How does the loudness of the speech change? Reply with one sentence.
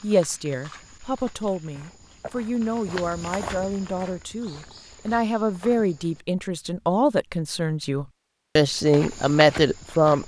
The loudness of the speech goes up.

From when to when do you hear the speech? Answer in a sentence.
The speech can be heard from 0.0 to 10.2 s.